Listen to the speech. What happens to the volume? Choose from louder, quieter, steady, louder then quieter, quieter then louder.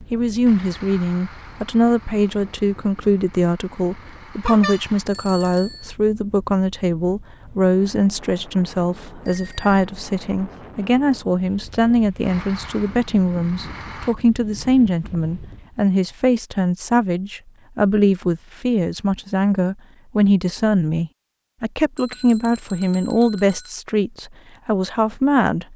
steady.